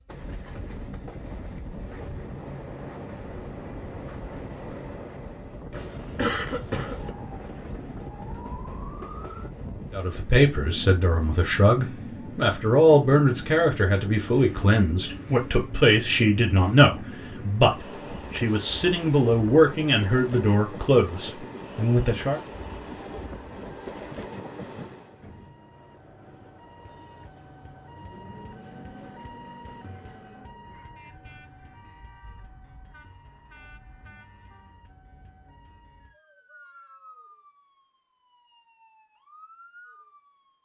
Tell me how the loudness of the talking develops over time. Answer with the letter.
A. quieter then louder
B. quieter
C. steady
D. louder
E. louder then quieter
C.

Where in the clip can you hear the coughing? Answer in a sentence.
You can hear the coughing from 5.7 to 7.1 s.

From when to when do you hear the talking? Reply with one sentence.
You can hear the talking from 9.9 to 22.4 s.